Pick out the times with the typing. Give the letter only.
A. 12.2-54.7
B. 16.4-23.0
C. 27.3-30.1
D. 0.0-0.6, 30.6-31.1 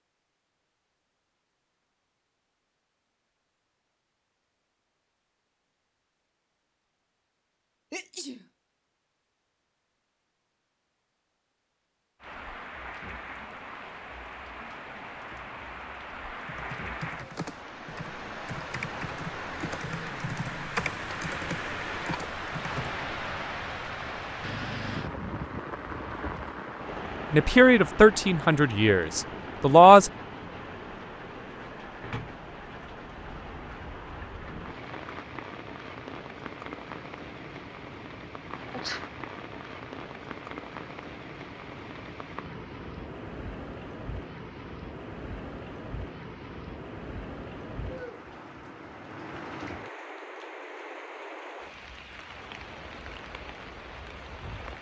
B.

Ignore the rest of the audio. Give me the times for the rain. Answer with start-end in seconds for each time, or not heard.
12.2-54.7.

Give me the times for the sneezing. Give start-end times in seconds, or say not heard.
7.9-8.4, 38.5-39.0.